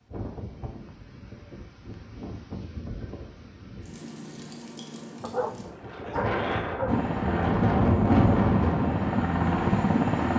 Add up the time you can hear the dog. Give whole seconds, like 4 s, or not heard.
2 s.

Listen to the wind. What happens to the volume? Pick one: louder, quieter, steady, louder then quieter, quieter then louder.
louder.